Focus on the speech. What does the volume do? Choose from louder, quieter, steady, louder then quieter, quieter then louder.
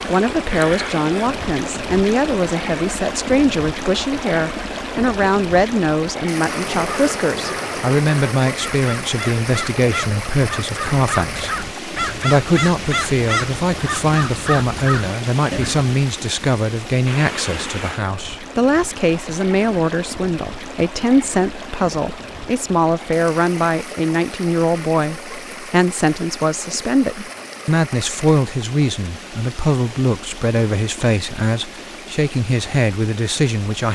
steady.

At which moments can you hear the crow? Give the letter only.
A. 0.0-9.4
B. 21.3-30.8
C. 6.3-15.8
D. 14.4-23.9
C.